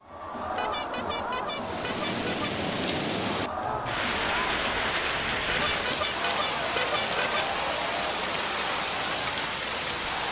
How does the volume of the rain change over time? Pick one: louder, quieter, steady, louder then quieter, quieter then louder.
steady.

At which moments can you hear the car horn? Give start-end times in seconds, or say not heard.
0.5-2.5, 5.5-7.2.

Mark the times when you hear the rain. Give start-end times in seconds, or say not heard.
1.5-10.2.